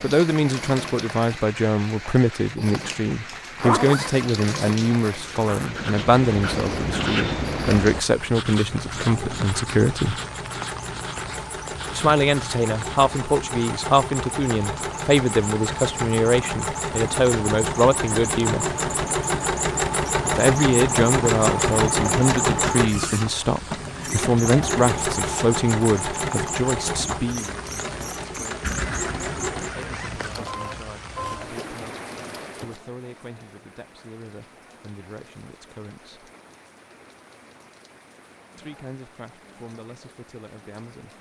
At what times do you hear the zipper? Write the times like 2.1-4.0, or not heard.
3.3-5.7, 28.6-30.4.